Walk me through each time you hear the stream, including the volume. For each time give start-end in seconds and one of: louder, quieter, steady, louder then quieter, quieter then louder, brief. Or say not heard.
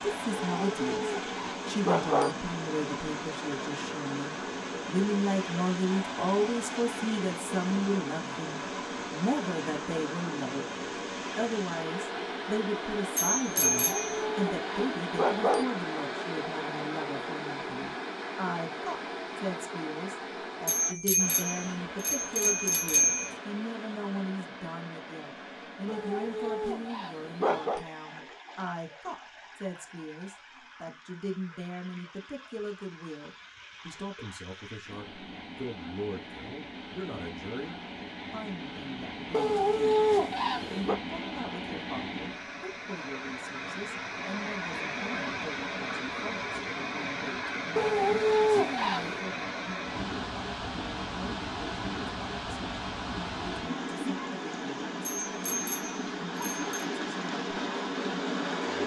0.0-58.8 quieter then louder.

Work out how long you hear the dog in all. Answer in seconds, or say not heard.
9 s.